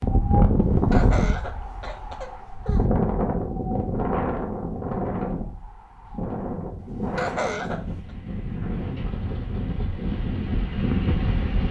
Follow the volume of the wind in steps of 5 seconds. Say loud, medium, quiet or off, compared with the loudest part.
loud, medium, loud.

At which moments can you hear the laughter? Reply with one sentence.
You can hear the laughter from 0.7 to 2.9 s and from 6.8 to 8.0 s.